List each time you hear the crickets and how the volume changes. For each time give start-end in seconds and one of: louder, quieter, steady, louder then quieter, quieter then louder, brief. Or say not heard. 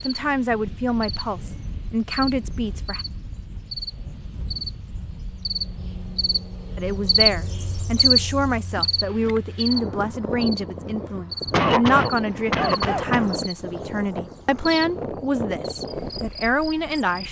0.0-17.2 louder then quieter.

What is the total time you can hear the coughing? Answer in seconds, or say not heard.
2 s.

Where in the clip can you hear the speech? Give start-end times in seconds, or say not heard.
0.0-3.0, 6.8-17.2.